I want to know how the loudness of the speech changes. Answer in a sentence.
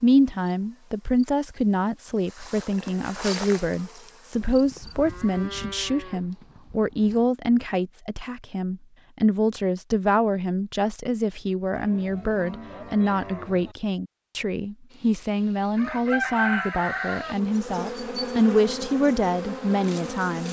The loudness of the speech stays about the same.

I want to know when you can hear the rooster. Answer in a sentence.
The rooster can be heard from 15.8 to 17.4 s.